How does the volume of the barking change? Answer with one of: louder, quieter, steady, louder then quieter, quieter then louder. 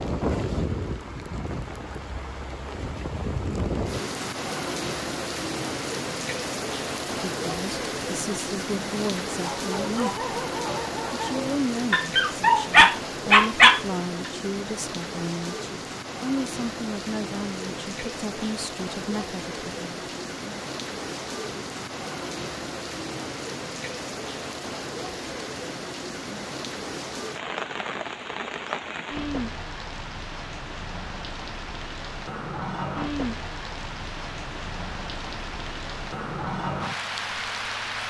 louder.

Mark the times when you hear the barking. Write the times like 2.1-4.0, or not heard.
9.4-14.3.